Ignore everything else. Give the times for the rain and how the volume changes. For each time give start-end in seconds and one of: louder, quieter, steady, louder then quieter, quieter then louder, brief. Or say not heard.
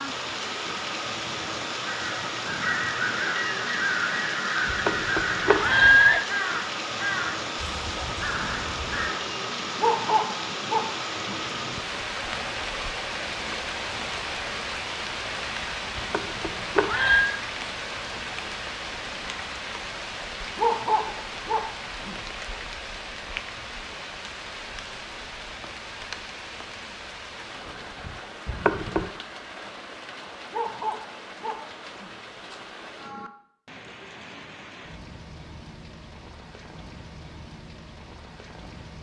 0.0-38.9 quieter.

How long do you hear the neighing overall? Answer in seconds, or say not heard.
4 s.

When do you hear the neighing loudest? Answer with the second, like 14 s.
6 s.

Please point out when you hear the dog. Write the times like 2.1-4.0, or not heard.
9.8-11.3, 20.6-22.1, 30.5-32.1.